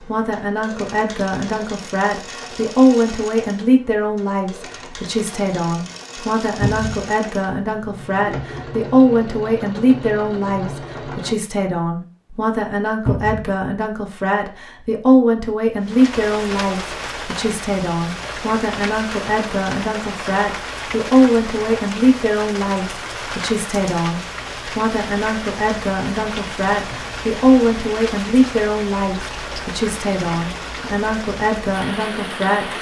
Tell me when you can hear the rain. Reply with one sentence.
The rain can be heard from 15.8 to 32.7 s.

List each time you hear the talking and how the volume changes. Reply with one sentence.
You can hear the talking from 0.0 to 32.7 s, at a steady volume.